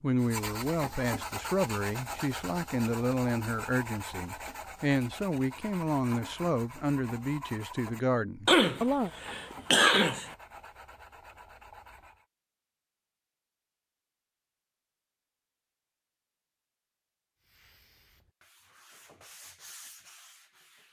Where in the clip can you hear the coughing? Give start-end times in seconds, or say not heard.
8.4-10.3.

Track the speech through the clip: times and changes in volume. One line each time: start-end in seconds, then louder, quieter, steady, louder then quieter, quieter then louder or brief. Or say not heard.
0.0-9.1 steady.